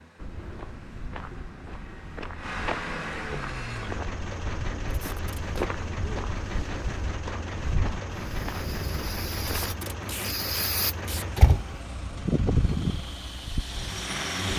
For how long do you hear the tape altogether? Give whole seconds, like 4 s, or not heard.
2 s.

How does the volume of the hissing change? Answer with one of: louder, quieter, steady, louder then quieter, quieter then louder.
louder then quieter.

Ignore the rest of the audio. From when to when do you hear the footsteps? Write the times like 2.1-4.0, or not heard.
0.1-9.8.